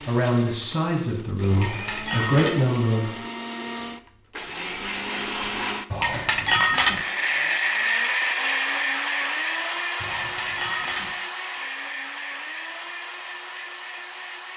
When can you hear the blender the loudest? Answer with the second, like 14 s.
8 s.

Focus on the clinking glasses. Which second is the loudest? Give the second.
7 s.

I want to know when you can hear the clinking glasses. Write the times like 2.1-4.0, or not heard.
1.5-2.5, 5.9-7.0, 10.0-11.1.